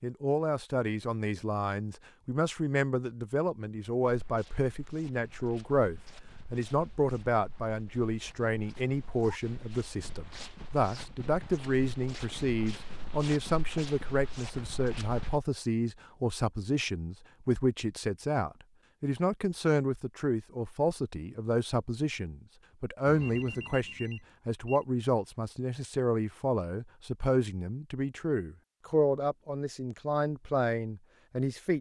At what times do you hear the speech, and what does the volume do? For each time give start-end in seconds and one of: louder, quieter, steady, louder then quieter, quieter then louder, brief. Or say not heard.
0.0-31.7 steady.